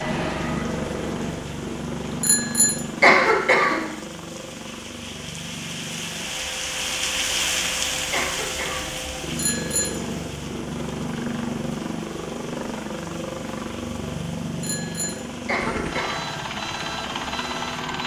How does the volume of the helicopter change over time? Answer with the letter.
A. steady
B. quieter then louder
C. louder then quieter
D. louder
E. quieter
B.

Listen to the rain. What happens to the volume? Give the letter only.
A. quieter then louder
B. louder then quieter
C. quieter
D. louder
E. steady
B.